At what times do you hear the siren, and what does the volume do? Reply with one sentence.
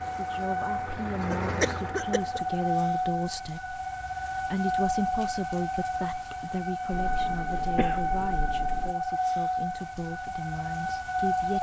The siren can be heard from 0.0 to 11.5 s, at a steady volume.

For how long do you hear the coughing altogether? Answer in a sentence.
You can hear the coughing for 3 seconds altogether.